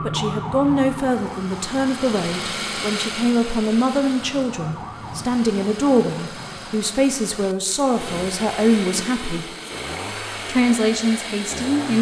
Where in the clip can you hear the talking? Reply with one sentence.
You can hear the talking from 0.0 to 9.4 s and from 10.4 to 11.9 s.